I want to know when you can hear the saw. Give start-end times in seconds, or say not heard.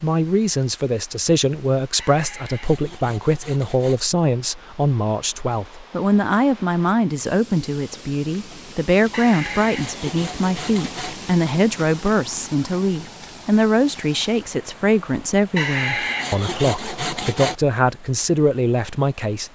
1.9-4.0, 9.1-11.2, 15.6-17.6.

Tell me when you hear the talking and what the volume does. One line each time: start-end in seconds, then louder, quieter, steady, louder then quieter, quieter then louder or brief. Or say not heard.
0.0-19.5 steady.